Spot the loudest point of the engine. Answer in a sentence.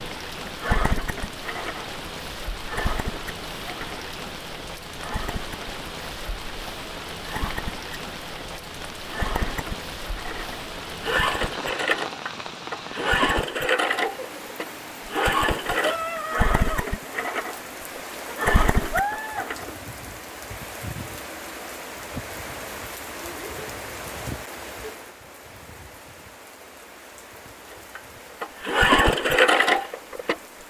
The loudest moment of the engine is at 29 seconds.